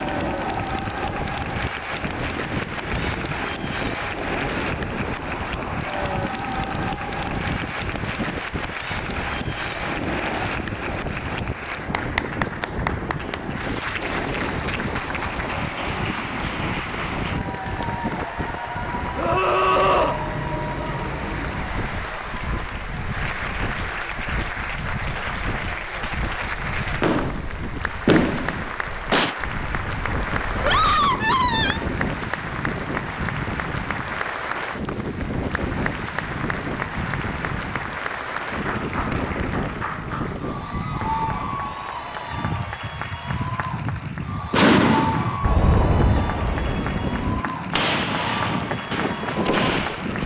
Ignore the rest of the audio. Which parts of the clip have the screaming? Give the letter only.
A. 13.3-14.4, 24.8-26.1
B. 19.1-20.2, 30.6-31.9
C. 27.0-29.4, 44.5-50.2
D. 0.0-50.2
B.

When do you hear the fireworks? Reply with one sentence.
You can hear the fireworks from 27.0 to 29.4 s and from 44.5 to 50.2 s.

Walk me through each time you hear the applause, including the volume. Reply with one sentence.
The applause can be heard from 0.0 to 50.2 s, at a steady volume.